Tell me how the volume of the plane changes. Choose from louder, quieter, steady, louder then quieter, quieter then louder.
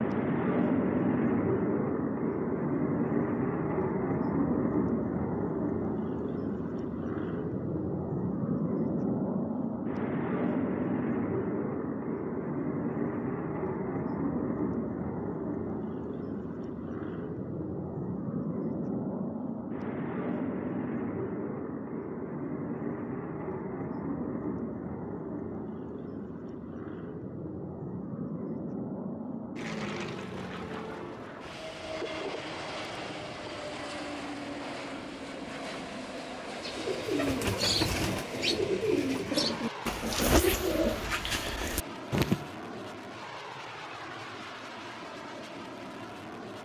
quieter.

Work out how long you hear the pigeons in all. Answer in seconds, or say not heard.
6 s.